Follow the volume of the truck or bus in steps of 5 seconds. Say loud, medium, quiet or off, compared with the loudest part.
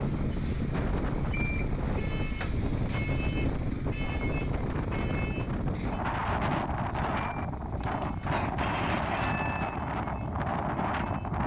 loud, medium, quiet.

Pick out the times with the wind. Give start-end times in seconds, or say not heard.
0.0-11.4.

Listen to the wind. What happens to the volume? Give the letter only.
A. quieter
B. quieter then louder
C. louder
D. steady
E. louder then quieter
D.